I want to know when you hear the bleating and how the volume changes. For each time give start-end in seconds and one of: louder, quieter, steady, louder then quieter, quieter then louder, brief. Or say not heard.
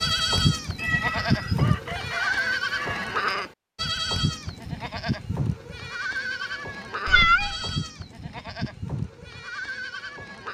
0.0-10.4 quieter.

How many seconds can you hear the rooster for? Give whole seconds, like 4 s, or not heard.
2 s.